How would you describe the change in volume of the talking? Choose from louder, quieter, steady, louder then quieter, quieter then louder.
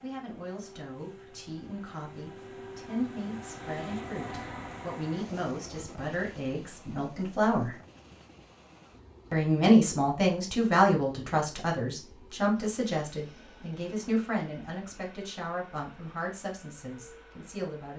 louder then quieter.